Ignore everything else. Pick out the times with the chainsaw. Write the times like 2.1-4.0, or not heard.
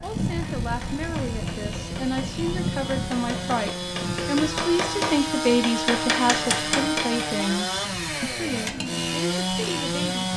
0.0-10.3.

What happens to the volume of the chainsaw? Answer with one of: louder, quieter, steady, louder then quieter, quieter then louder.
louder.